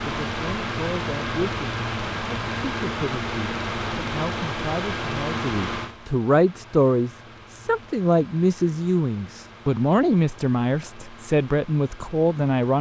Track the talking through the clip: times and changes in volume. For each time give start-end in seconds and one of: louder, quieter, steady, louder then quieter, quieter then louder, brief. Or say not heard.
0.0-12.7 louder.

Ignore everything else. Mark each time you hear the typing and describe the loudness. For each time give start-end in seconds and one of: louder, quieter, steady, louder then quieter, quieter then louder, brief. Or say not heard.
not heard.